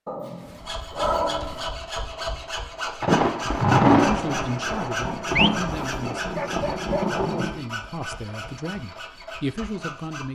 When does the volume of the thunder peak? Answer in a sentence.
The loudest moment of the thunder is at 4 seconds.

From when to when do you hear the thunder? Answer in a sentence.
You can hear the thunder from 3.0 to 7.6 s.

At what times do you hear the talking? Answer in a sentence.
The talking can be heard from 4.0 to 10.3 s.